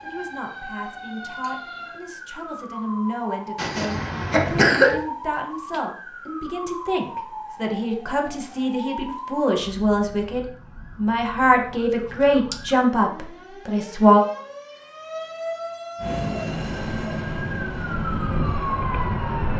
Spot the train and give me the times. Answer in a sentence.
You can hear the train from 15.9 to 19.5 s.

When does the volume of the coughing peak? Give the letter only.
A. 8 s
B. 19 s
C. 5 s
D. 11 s
C.